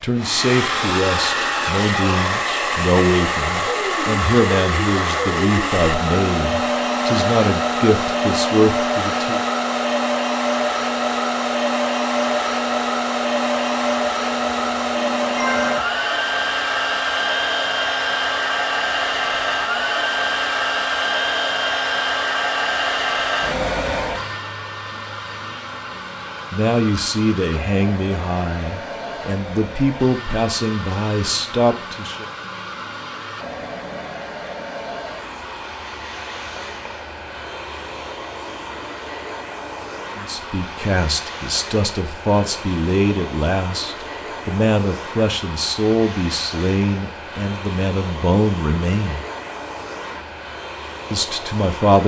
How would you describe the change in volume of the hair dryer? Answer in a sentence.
The loudness of the hair dryer goes down.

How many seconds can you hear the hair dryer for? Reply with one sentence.
The hair dryer can be heard for 52 seconds in total.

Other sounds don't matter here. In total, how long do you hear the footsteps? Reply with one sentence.
You can't hear the footsteps here.